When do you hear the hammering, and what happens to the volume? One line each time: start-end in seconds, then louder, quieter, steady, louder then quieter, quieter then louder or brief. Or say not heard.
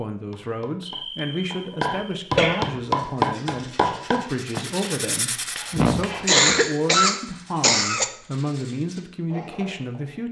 0.3-6.3 louder then quieter.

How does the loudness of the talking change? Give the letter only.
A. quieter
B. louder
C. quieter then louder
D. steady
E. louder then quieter
D.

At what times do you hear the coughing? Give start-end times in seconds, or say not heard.
0.8-2.7, 5.8-8.1.